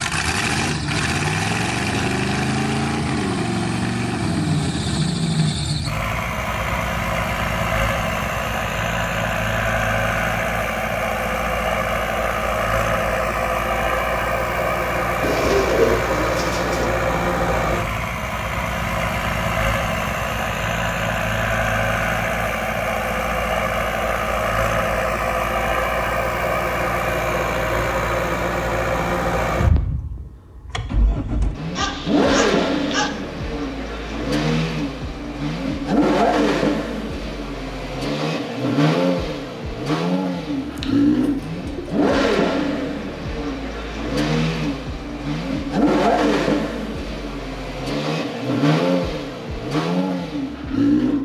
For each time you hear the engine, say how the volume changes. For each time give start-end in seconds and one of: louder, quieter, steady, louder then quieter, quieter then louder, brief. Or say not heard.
0.0-51.2 steady.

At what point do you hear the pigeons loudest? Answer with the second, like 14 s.
16 s.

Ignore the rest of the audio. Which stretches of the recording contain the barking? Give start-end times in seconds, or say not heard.
31.8-33.1.